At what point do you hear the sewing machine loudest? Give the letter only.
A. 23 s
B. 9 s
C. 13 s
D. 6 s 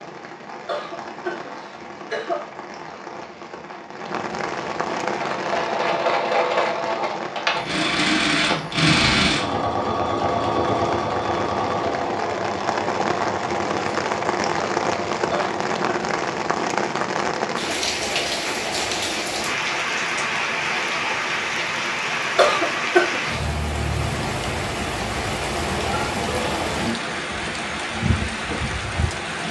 B.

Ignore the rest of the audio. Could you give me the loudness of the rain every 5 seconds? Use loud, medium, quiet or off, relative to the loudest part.
medium, medium, loud, loud, loud, loud.